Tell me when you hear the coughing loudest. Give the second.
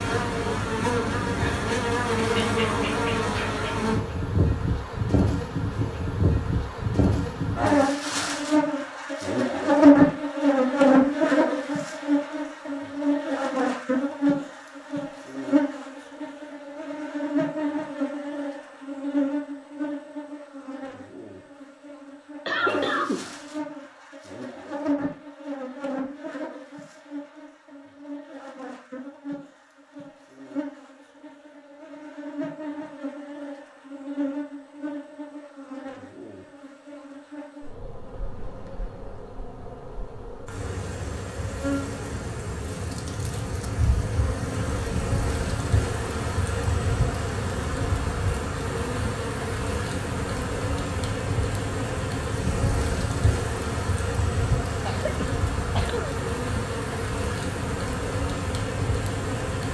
23 s.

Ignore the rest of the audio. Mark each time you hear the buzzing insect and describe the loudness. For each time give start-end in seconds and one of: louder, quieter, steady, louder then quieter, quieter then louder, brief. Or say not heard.
0.0-59.6 quieter then louder.